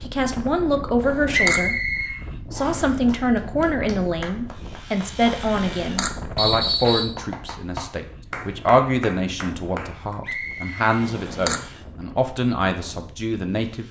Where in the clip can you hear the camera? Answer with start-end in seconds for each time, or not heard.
1.0-1.7, 5.5-6.2, 11.0-11.7.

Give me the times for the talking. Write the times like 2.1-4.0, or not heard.
0.0-1.8, 2.5-13.8.